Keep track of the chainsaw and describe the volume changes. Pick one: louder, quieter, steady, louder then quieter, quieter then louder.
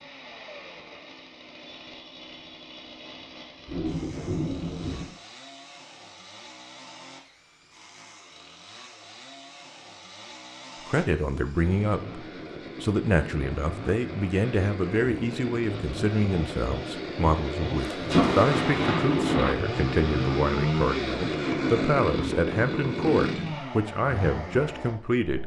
louder.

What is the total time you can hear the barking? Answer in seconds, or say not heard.
not heard.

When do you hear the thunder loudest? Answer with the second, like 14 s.
18 s.